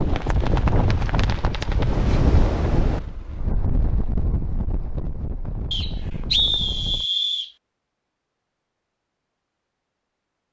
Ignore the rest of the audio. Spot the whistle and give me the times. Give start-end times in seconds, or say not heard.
5.7-7.5.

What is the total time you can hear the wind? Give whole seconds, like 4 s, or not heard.
7 s.